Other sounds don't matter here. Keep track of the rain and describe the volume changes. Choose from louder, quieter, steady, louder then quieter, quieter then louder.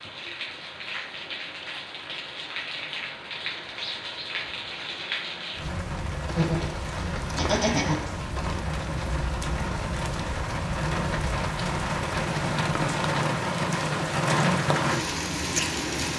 louder.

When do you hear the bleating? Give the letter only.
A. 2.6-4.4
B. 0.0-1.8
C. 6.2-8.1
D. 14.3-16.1
C.